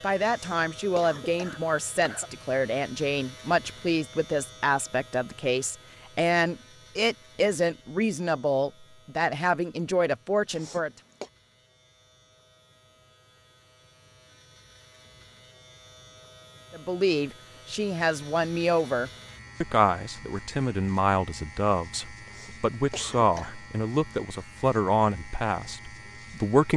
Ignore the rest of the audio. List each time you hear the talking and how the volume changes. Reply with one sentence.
You can hear the talking from 0.0 to 10.9 s, at a steady volume; and from 16.7 to 26.7 s, at a steady volume.